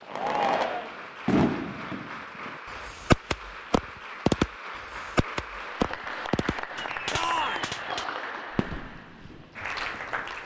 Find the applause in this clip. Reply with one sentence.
The applause can be heard from 0.0 to 10.4 s.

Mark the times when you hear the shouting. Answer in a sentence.
The shouting can be heard from 0.1 to 0.9 s and from 7.1 to 7.7 s.